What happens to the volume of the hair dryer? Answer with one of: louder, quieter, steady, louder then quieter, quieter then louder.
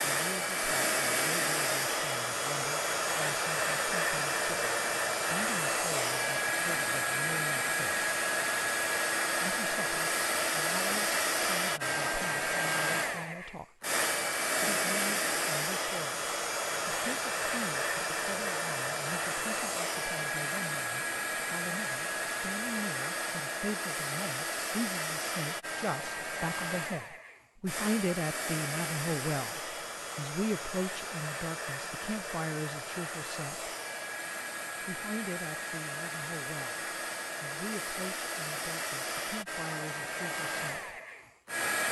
quieter.